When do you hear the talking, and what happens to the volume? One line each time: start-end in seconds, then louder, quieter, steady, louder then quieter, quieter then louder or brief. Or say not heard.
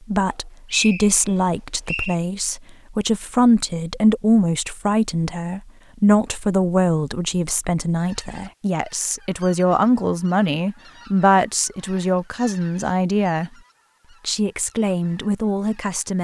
0.1-13.5 steady
14.2-16.1 brief.